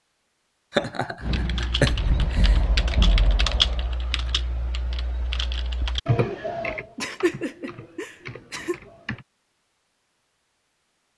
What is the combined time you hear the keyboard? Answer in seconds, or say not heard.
8 s.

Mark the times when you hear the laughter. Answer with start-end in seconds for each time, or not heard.
0.7-2.6, 7.0-8.8.